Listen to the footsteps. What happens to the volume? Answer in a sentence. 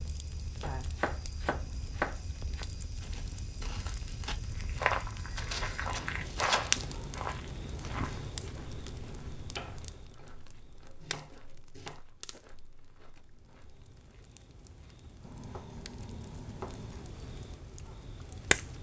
The volume of the footsteps goes up, then down.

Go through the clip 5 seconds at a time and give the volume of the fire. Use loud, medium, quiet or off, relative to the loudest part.
medium, loud, quiet, loud.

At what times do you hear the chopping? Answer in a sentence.
The chopping can be heard from 0.6 to 2.6 s, from 5.3 to 6.9 s, from 9.5 to 10.3 s, from 11.0 to 12.0 s and from 15.2 to 17.1 s.